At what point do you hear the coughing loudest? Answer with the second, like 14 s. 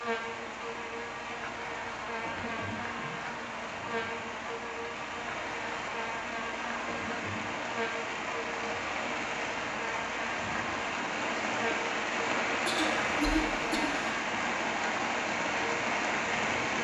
13 s.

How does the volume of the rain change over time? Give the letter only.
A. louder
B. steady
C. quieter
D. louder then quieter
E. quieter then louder
A.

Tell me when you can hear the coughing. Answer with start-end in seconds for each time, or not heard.
2.2-3.2, 6.8-7.5, 12.7-14.1.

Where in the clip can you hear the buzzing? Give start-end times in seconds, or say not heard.
0.0-16.7.